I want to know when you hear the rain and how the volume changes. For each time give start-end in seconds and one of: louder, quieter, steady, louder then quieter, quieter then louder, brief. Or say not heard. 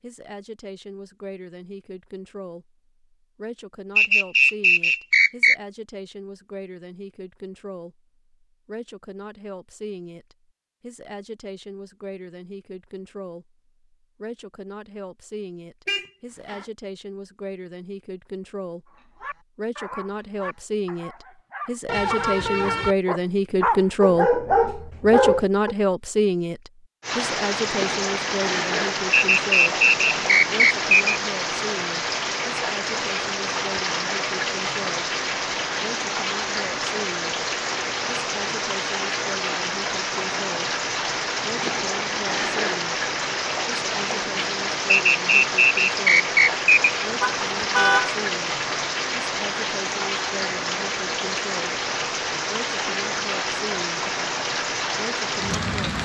27.0-56.0 steady.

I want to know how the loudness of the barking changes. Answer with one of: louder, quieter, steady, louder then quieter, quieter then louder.
louder.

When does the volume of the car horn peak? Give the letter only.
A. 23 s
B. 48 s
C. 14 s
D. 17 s
B.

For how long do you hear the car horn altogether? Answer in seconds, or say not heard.
3 s.